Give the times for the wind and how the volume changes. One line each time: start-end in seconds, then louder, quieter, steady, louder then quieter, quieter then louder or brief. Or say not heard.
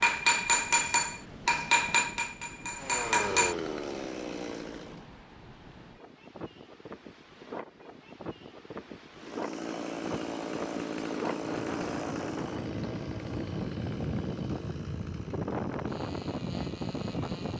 0.0-17.5 louder.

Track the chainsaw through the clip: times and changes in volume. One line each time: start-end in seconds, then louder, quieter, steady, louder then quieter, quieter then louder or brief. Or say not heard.
2.8-5.0 brief
9.2-17.5 quieter.